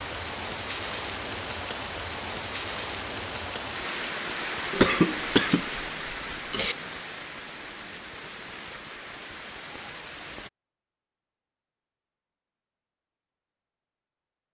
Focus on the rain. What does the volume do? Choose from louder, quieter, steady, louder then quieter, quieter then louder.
quieter.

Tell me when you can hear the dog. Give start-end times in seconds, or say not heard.
not heard.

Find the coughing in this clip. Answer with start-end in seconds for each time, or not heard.
4.7-6.8.